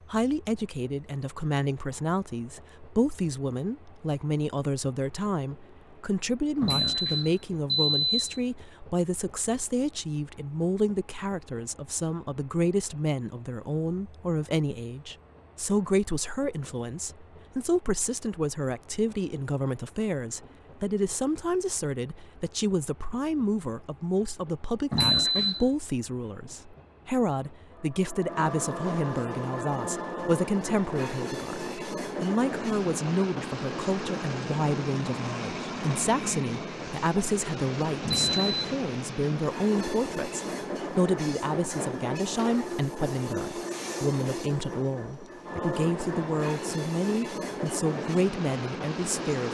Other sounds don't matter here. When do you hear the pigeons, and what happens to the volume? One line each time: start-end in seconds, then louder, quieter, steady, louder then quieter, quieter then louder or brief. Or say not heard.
not heard.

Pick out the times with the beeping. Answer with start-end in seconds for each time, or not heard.
6.6-8.4, 24.9-25.6, 38.0-38.5.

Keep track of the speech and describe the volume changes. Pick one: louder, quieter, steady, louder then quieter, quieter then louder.
steady.